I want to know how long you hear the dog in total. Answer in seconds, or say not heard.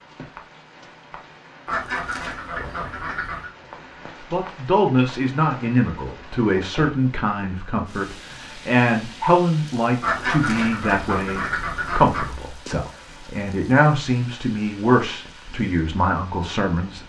not heard.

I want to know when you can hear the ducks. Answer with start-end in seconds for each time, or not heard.
1.6-3.5, 10.0-12.3.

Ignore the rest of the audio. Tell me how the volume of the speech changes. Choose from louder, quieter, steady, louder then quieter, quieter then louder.
steady.